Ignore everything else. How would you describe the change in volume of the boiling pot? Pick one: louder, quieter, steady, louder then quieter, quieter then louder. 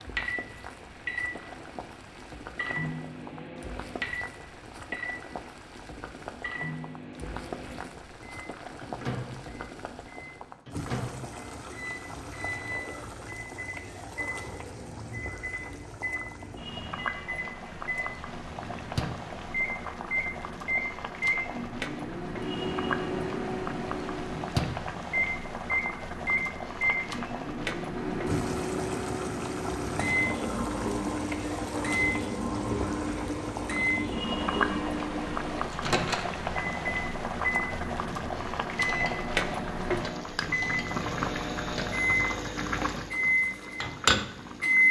louder.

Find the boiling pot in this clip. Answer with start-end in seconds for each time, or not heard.
0.0-44.8.